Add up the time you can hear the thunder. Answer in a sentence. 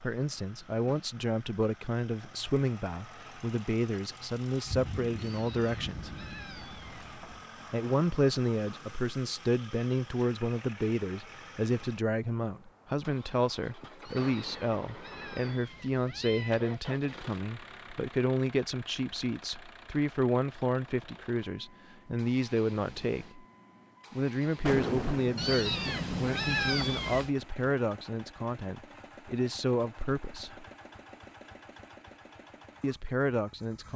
The thunder can be heard for 5 seconds in total.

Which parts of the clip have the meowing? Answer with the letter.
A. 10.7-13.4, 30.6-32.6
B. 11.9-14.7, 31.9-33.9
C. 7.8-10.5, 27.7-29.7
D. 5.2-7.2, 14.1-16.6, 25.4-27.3
D.